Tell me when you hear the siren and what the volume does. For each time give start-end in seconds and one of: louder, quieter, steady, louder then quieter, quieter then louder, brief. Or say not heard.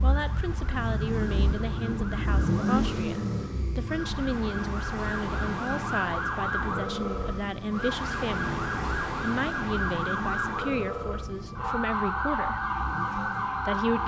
0.0-14.0 louder.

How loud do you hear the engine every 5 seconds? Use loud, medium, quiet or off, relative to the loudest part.
loud, medium, medium.